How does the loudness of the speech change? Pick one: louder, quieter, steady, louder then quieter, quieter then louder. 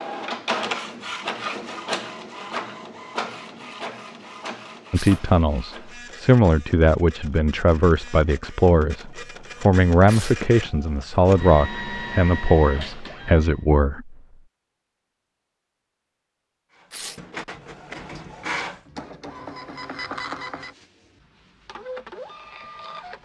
steady.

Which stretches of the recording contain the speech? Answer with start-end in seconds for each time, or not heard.
4.9-14.2.